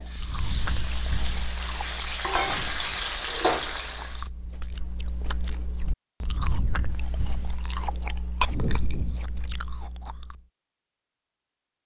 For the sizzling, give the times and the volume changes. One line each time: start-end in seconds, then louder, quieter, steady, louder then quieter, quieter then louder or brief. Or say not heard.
0.0-4.2 louder.